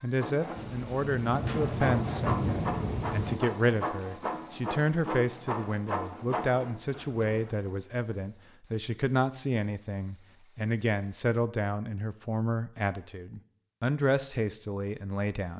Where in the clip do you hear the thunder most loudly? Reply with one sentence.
The volume of the thunder peaks at 2 seconds.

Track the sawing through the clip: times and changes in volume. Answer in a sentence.
The sawing can be heard from 0.2 to 7.7 s, at a steady volume.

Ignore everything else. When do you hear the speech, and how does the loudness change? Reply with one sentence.
The speech can be heard from 0.0 to 15.5 s, at a steady volume.